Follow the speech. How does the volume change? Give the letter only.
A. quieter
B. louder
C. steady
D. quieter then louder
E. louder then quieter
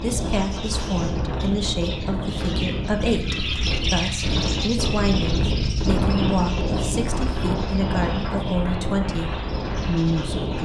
C.